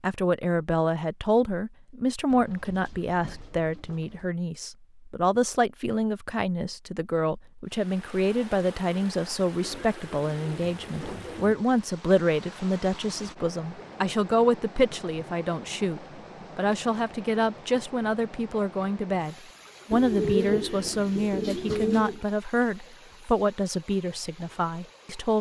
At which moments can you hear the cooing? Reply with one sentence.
The cooing can be heard from 2.3 to 4.3 s, from 9.6 to 11.7 s and from 19.9 to 22.2 s.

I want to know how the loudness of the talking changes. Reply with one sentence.
The loudness of the talking stays about the same.